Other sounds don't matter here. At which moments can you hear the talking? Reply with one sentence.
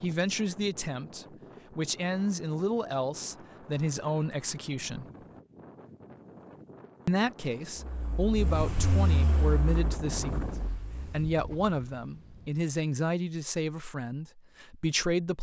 The talking can be heard from 0.0 to 5.0 s and from 7.0 to 15.3 s.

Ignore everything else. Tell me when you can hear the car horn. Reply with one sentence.
You can't hear the car horn here.